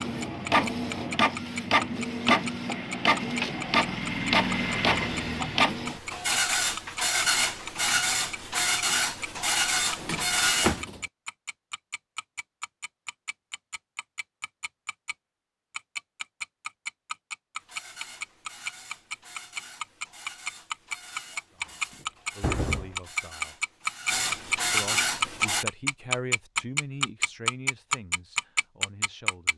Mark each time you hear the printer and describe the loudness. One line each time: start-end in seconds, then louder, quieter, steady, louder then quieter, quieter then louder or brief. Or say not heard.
0.0-10.8 steady
17.6-25.6 louder.